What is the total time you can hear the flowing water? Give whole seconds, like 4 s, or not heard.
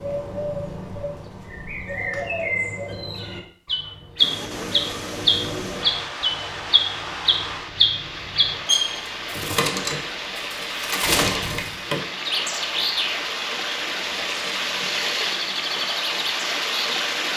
13 s.